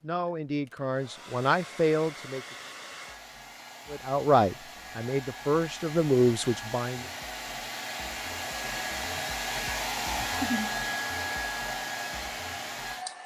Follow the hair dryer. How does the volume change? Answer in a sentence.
The loudness of the hair dryer goes up.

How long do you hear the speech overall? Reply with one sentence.
You can hear the speech for 6 seconds altogether.